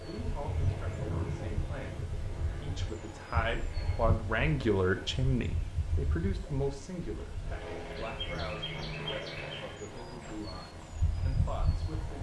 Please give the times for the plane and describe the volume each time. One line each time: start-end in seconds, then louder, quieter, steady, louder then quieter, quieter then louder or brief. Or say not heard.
0.0-5.2 quieter
7.3-12.1 quieter.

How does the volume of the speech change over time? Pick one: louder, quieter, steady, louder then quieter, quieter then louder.
louder then quieter.